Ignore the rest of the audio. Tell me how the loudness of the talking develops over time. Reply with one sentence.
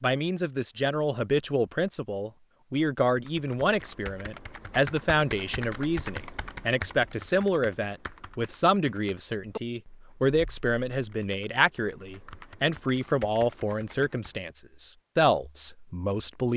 The volume of the talking stays about the same.